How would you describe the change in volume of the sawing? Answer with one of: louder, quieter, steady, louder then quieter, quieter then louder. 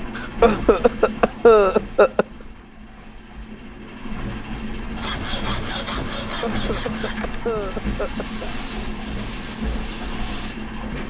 quieter then louder.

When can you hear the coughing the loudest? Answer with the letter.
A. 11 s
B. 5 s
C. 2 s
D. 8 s
C.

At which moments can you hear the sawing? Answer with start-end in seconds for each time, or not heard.
5.0-10.6.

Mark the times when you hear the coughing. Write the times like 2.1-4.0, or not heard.
0.1-2.2, 6.2-8.5.